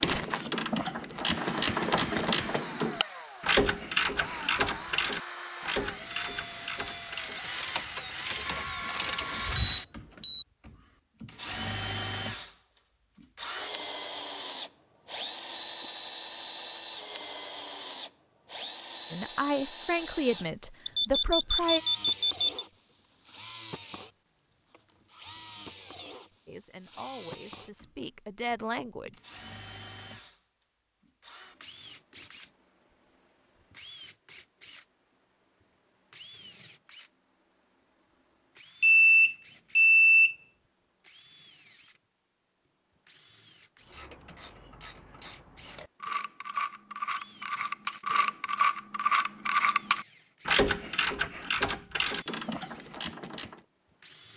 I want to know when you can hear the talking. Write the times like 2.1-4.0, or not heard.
19.1-21.8, 26.4-29.1.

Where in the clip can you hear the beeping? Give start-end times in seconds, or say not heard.
8.4-10.4, 20.9-22.5, 38.8-40.4.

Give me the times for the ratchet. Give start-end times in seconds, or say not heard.
0.0-9.8, 43.9-53.6.